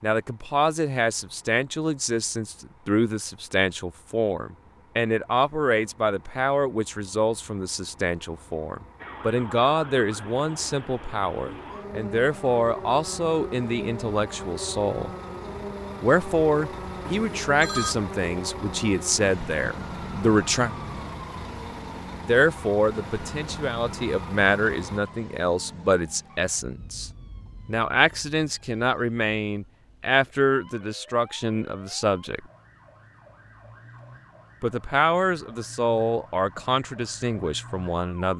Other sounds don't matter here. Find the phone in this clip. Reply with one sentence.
The phone can be heard from 17.1 to 17.9 s.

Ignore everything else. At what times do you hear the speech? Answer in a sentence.
You can hear the speech from 0.0 to 15.1 s, from 16.0 to 20.7 s, from 22.2 to 32.5 s and from 34.6 to 38.3 s.